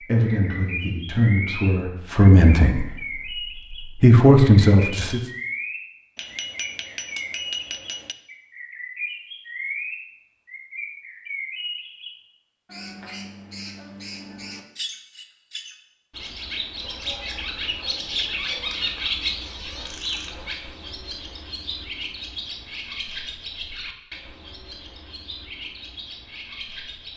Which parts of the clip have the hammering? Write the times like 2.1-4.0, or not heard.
6.2-8.2.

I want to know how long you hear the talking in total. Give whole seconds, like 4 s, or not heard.
5 s.